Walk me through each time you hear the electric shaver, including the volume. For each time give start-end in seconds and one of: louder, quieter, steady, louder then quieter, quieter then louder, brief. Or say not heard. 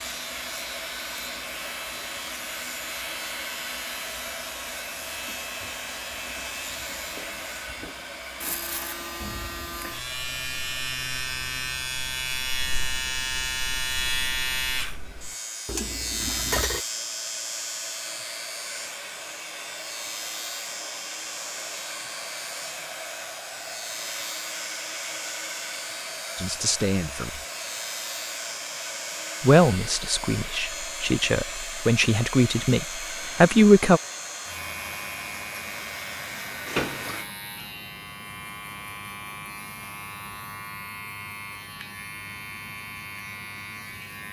0.0-44.2 louder then quieter.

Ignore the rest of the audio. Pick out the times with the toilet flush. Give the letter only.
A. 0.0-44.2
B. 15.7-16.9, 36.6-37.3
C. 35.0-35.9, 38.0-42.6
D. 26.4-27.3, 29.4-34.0
B.